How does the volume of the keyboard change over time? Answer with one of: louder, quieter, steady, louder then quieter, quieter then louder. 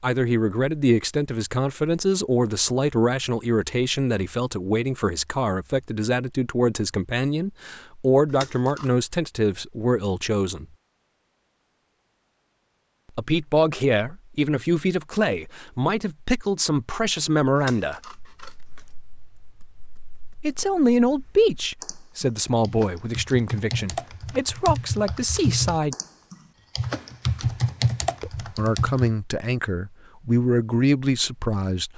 louder.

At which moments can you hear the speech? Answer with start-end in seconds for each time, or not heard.
0.0-10.7, 13.2-18.1, 20.4-25.9, 28.2-31.9.